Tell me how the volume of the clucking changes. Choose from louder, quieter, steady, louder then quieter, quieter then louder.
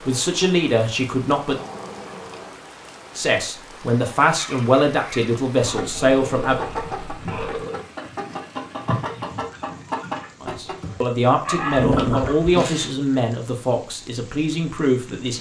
louder.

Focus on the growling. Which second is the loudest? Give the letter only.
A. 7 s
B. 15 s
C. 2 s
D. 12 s
D.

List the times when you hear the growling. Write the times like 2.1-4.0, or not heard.
1.4-2.5, 5.6-7.7, 11.8-12.7.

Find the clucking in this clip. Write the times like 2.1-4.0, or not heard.
4.3-12.9.